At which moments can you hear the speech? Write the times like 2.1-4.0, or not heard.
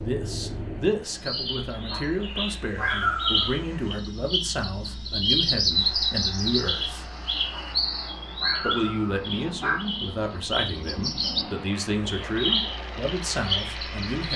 0.0-7.0, 8.6-14.3.